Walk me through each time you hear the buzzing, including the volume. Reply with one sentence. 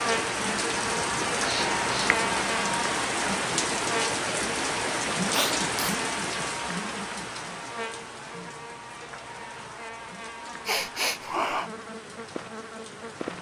You can hear the buzzing from 0.0 to 13.3 s, getting quieter.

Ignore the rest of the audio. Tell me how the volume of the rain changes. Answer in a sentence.
The loudness of the rain goes down.